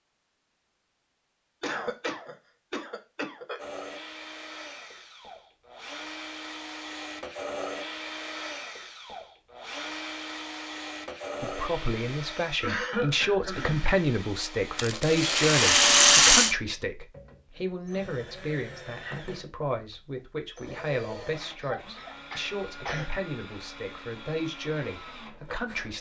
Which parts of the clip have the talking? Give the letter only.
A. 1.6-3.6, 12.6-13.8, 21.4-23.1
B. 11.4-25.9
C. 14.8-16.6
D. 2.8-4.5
B.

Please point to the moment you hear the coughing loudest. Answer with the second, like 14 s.
13 s.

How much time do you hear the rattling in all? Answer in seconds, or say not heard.
2 s.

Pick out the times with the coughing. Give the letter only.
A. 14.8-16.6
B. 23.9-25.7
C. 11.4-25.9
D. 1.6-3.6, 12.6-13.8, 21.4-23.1
D.